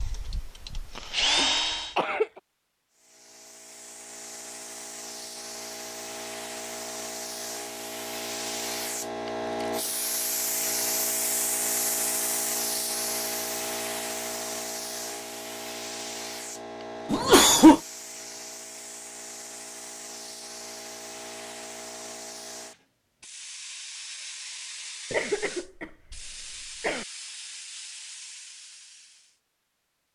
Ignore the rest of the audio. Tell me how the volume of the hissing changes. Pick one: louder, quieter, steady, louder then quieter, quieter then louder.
louder then quieter.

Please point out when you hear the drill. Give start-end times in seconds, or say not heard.
0.0-1.9.